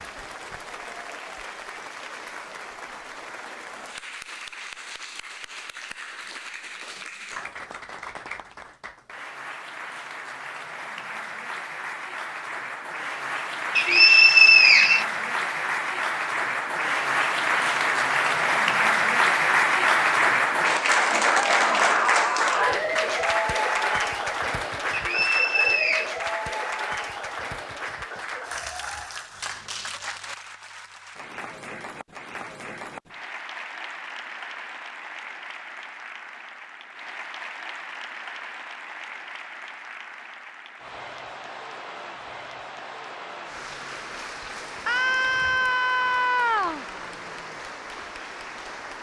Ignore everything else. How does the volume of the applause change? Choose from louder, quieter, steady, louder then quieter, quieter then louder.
louder then quieter.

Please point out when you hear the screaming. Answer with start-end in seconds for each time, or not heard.
21.5-22.8, 44.9-46.9.